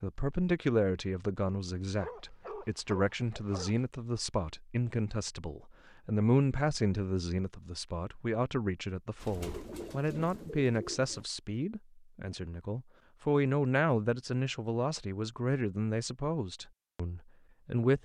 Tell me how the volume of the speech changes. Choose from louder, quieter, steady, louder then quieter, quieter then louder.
steady.